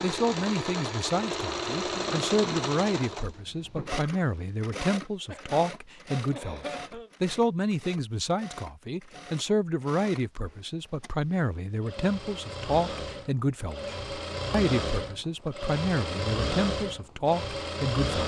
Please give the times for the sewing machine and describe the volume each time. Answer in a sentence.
The sewing machine can be heard from 0.0 to 18.2 s, getting quieter then louder.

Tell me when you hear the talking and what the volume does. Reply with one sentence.
You can hear the talking from 0.0 to 18.2 s, at a steady volume.